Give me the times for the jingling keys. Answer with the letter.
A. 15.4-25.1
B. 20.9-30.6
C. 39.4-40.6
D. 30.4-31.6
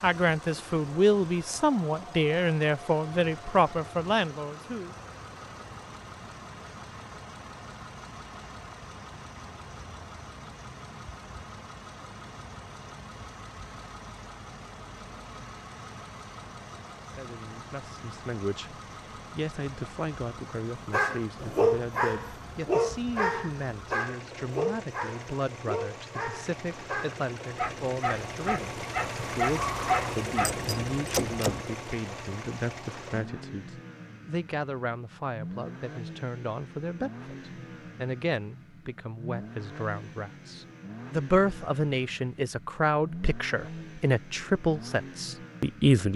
D.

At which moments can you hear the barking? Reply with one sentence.
The barking can be heard from 20.9 to 30.6 s.